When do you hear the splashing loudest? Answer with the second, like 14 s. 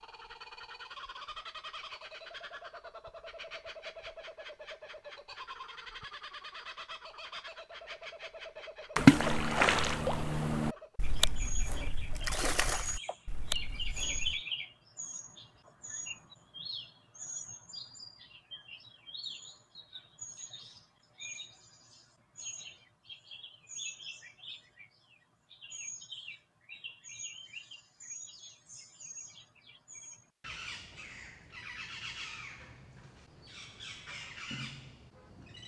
9 s.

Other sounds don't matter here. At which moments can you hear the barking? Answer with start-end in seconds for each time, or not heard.
not heard.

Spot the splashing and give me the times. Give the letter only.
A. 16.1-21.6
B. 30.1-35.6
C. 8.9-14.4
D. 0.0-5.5
C.